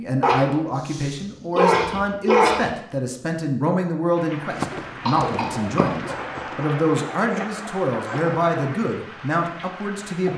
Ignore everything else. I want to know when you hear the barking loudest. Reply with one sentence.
The volume of the barking peaks at 2 seconds.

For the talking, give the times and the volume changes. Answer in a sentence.
The talking can be heard from 0.0 to 10.3 s, at a steady volume.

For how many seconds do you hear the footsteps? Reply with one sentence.
You can hear the footsteps for 2 seconds altogether.